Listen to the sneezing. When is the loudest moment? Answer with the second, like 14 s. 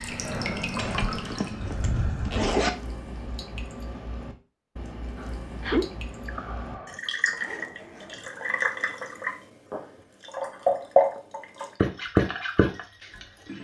6 s.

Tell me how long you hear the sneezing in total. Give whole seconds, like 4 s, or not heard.
2 s.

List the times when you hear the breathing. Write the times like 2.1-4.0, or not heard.
0.0-2.5.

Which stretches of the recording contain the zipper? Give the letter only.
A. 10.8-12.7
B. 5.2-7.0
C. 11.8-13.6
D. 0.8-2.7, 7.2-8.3
D.